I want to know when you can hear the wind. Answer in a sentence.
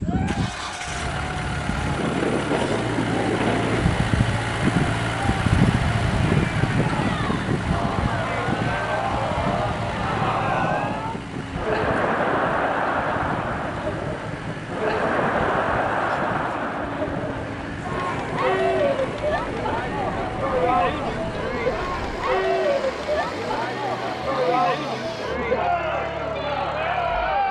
You can hear the wind from 0.0 to 22.4 s.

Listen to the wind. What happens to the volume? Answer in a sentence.
The loudness of the wind goes down.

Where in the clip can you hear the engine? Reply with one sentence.
You can hear the engine from 0.1 to 27.4 s.